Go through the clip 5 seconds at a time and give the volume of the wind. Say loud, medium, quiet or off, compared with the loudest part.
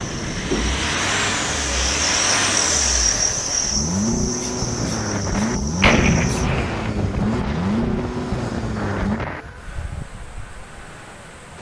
loud, loud, medium.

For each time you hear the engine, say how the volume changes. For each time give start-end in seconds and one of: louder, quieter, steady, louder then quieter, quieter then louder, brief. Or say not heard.
0.0-11.4 quieter.